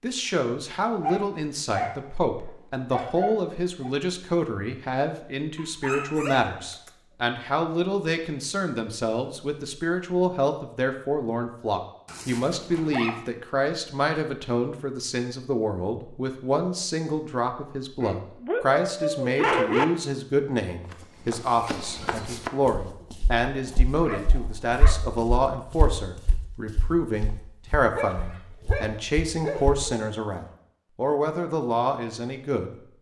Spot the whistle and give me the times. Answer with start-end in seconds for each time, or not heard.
not heard.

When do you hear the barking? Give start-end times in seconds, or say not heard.
1.0-3.9, 5.5-6.9, 12.1-13.2, 18.0-19.9, 23.9-25.1, 27.9-29.9.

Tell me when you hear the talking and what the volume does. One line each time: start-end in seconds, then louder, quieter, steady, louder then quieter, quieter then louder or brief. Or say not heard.
0.0-32.8 steady.